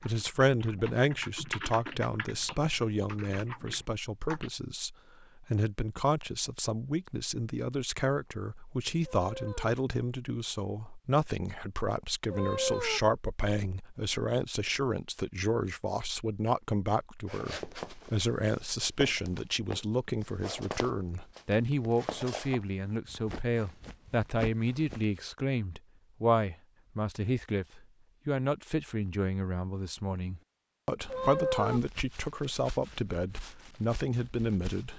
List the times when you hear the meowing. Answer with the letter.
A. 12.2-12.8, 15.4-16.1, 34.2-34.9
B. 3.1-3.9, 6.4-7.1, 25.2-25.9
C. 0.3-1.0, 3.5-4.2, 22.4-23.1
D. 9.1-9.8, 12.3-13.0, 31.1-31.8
D.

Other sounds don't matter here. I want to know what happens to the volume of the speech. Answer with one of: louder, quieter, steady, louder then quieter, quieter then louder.
steady.